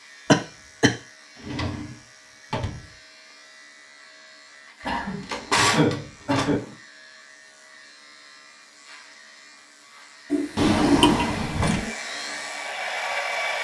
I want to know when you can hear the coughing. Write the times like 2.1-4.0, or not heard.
0.3-0.9, 4.8-6.6, 10.3-11.3.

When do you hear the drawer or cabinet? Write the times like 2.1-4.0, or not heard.
1.4-2.9, 5.0-6.8, 10.6-11.9.